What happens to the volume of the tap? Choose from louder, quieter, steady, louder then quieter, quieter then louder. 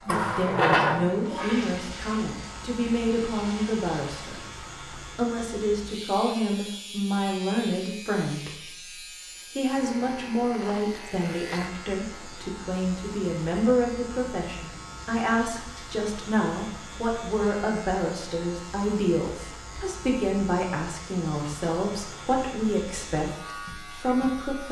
quieter.